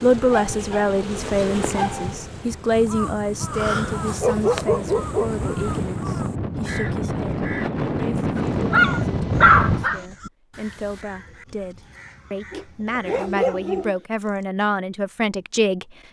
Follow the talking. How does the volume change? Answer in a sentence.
The volume of the talking goes down, then up.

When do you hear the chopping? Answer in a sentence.
The chopping can't be heard in this clip.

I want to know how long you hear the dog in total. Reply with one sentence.
The dog can be heard for 6 seconds in total.